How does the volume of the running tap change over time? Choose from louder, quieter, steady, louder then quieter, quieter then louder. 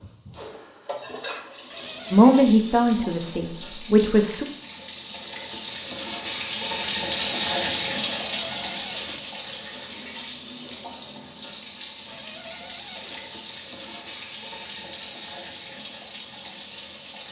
louder then quieter.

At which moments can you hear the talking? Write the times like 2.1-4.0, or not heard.
2.1-4.5.